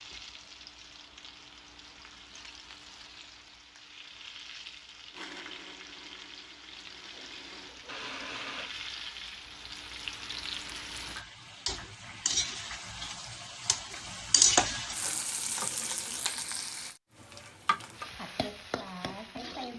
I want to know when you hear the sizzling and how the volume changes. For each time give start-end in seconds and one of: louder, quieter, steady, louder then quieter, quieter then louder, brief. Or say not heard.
0.0-19.7 louder then quieter.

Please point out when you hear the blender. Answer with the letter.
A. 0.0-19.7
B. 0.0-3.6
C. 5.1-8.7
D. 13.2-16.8
C.